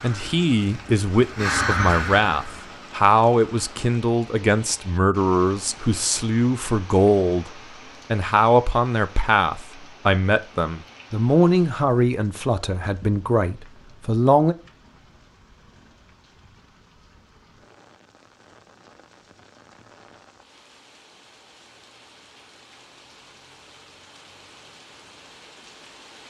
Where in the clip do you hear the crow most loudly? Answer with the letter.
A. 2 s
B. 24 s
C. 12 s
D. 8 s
A.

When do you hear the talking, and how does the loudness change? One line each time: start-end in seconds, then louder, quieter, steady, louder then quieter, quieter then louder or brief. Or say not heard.
0.0-14.6 steady.